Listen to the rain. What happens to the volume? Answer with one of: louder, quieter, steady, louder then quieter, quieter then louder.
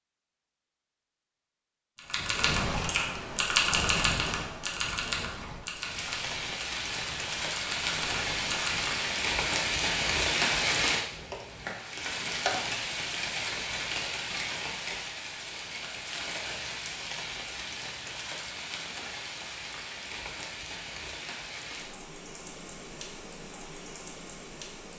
quieter.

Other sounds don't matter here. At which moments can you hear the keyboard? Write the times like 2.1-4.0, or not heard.
2.0-9.0.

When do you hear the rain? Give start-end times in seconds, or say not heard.
5.7-24.9.